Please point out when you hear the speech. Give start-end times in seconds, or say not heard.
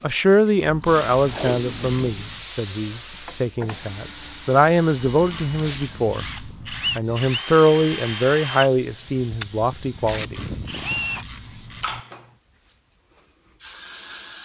0.0-6.2, 7.0-10.4.